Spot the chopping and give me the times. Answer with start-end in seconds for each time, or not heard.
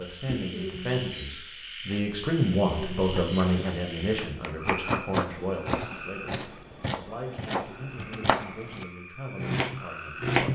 3.1-10.5.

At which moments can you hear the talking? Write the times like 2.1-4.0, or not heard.
0.0-10.5.